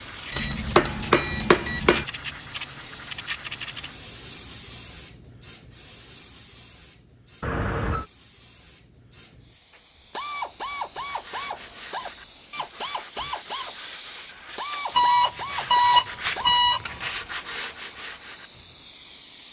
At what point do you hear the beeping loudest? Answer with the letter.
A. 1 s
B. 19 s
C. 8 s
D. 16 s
D.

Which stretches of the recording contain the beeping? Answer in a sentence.
The beeping can be heard from 0.3 to 1.8 s, from 7.4 to 8.1 s and from 14.9 to 16.9 s.